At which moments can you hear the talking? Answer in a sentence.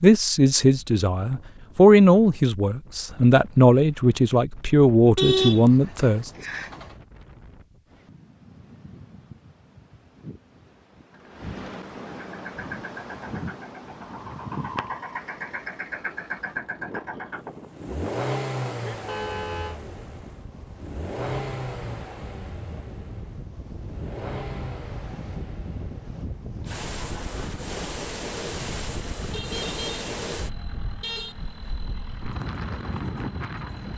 The talking can be heard from 0.0 to 6.3 s.